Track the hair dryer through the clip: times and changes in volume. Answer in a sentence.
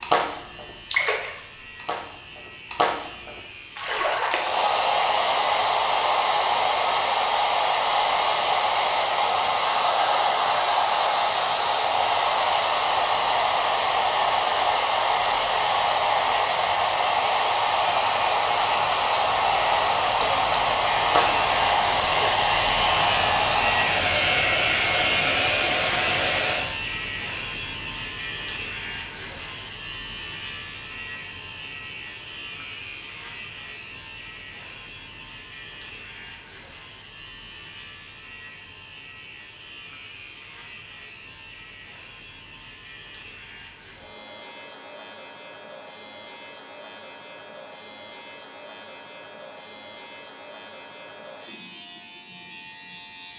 The hair dryer can be heard from 4.3 to 26.8 s, at a steady volume.